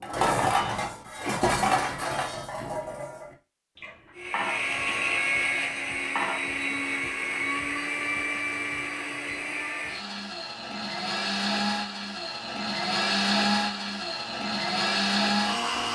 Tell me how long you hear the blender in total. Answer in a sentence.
The blender can be heard for 12 seconds in total.